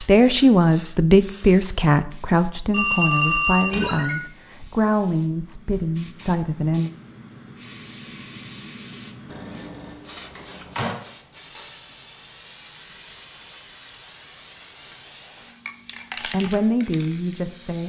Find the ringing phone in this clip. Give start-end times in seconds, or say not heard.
2.7-4.2, 9.2-10.9.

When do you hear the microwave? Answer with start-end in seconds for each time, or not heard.
not heard.